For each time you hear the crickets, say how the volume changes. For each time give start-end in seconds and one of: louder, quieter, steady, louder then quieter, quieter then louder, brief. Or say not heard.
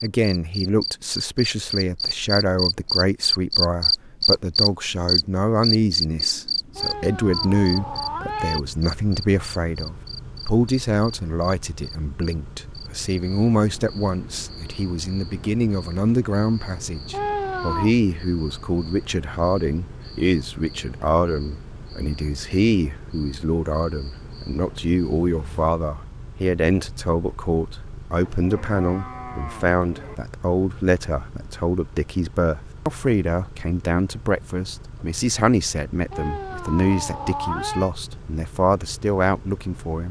0.0-25.2 quieter.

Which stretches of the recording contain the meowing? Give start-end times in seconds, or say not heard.
6.8-8.6, 17.1-17.9, 36.1-37.9.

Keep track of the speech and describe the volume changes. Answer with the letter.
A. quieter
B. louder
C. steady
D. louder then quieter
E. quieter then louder
C.